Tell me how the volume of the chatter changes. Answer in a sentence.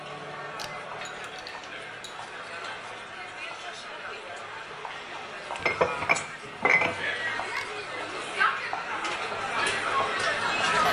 The loudness of the chatter goes up.